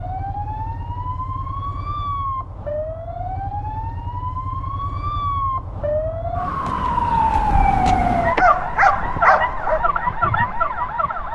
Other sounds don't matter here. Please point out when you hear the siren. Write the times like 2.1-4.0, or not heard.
0.0-11.3.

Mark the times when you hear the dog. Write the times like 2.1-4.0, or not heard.
8.2-9.8.